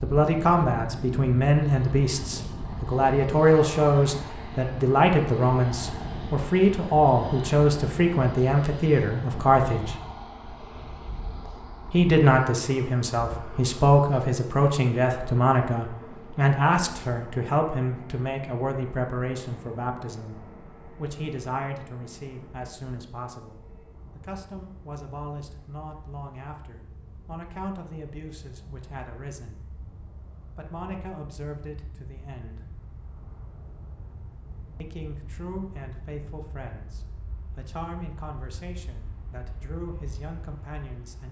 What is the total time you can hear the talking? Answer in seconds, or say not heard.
36 s.